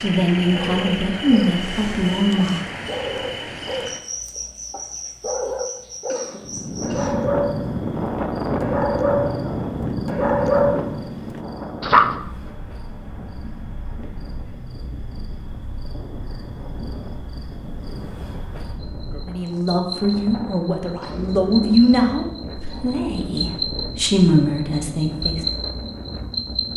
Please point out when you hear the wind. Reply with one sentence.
You can hear the wind from 6.4 to 26.7 s.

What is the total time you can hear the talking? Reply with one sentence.
You can hear the talking for 9 seconds altogether.